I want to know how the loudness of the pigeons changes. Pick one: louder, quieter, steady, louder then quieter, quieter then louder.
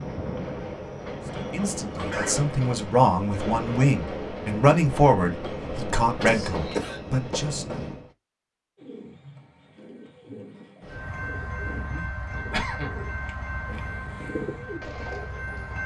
louder.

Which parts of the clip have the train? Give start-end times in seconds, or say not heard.
0.0-8.1, 10.8-15.8.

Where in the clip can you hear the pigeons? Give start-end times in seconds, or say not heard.
8.8-15.8.